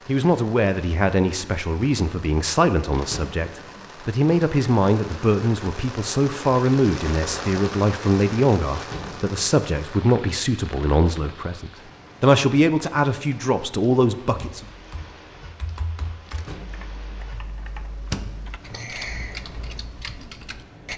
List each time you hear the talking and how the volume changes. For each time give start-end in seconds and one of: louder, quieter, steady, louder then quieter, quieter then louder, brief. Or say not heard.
0.1-14.7 steady.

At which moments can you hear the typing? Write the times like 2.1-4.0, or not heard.
14.3-20.9.